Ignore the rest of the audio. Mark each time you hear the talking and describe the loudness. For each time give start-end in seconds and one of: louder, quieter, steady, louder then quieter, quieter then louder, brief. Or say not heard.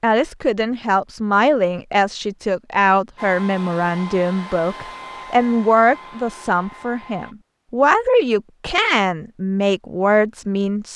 0.0-10.9 steady.